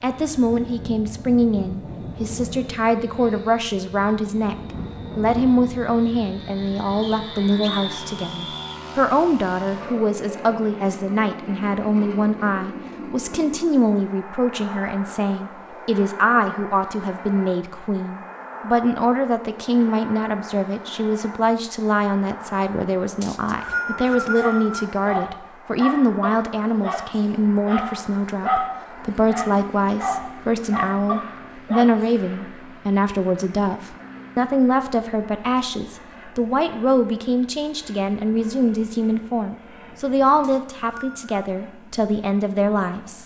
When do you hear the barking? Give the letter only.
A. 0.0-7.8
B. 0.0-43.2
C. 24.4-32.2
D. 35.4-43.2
C.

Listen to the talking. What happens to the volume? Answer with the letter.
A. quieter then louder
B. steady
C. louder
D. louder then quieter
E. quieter
B.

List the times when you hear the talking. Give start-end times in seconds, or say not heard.
0.0-43.2.